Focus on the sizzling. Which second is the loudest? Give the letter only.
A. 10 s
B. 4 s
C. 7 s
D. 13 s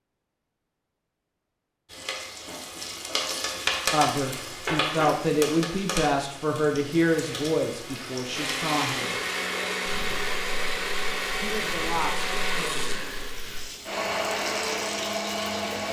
B.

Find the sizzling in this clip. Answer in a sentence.
You can hear the sizzling from 1.9 to 15.8 s.